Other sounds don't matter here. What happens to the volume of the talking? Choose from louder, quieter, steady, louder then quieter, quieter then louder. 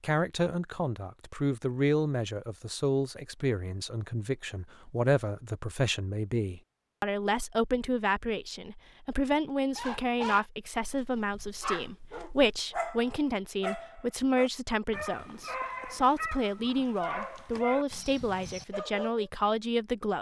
steady.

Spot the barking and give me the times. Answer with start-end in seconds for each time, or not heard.
9.8-19.3.